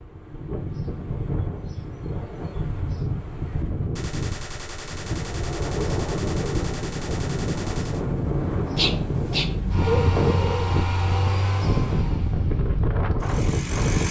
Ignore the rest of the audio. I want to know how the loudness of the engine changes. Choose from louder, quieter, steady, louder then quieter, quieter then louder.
quieter then louder.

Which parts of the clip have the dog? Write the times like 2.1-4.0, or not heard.
8.8-10.8.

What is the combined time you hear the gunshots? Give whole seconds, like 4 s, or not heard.
4 s.